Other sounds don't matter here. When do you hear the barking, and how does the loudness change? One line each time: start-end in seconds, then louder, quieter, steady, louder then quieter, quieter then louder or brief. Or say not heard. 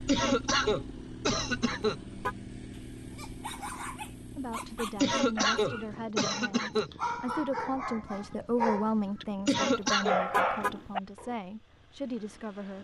2.7-11.3 louder.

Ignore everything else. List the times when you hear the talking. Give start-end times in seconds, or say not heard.
4.3-12.7.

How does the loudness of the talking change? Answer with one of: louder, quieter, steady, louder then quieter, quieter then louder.
louder then quieter.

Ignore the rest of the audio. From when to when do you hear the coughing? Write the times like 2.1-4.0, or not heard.
0.1-2.0, 5.0-6.9, 9.4-10.2.